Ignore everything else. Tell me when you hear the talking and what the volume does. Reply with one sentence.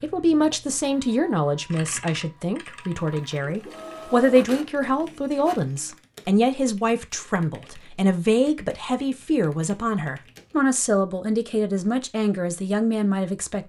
You can hear the talking from 0.0 to 13.6 s, at a steady volume.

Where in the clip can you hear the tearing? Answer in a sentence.
You can't hear the tearing here.